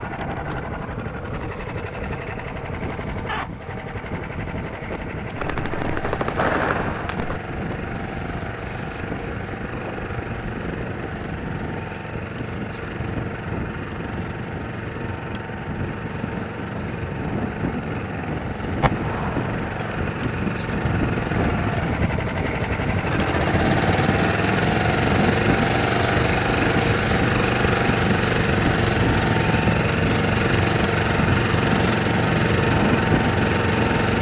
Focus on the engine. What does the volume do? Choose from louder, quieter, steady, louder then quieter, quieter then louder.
louder.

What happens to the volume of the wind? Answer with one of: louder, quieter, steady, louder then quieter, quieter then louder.
louder.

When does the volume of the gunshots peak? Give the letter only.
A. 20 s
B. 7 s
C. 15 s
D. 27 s
B.